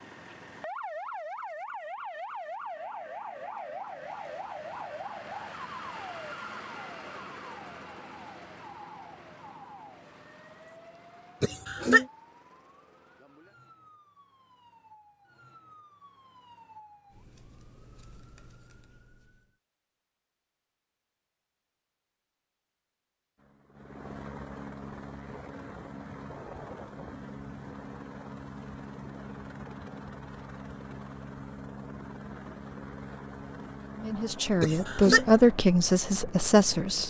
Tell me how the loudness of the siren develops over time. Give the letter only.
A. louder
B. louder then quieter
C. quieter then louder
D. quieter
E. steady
D.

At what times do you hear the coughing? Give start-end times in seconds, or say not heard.
11.4-12.1, 34.6-35.2.